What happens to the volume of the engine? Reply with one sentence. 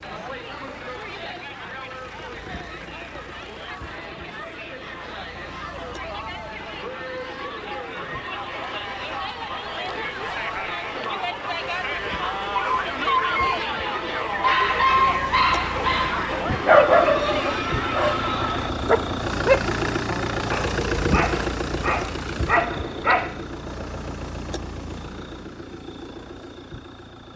The volume of the engine goes up, then down.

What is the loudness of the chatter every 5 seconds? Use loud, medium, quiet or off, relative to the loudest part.
medium, medium, loud, loud, off, off.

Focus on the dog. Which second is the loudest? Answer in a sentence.
The volume of the dog peaks at 17 seconds.